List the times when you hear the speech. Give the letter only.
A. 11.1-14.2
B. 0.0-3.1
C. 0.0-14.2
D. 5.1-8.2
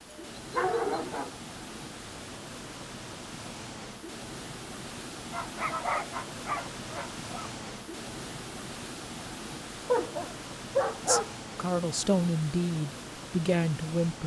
A.